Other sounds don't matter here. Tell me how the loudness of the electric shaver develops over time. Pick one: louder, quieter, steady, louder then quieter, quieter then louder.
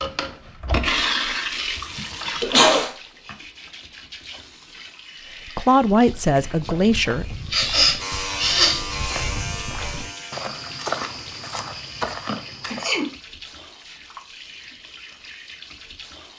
quieter.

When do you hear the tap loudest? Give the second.
1 s.